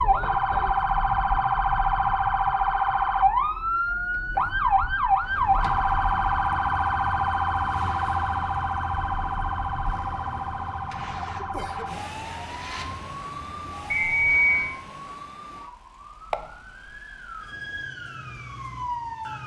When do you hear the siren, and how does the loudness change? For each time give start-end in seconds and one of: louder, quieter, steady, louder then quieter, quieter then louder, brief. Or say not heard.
0.0-19.4 quieter.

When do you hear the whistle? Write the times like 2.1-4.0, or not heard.
13.9-14.7.